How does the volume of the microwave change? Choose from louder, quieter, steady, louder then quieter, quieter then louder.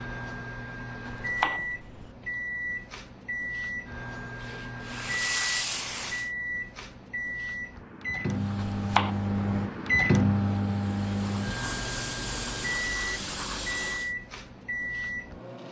louder then quieter.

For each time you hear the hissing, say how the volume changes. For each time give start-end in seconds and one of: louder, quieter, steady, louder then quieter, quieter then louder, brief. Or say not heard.
4.2-6.3 brief
8.2-14.2 louder.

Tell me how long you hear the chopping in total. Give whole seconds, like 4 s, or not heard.
2 s.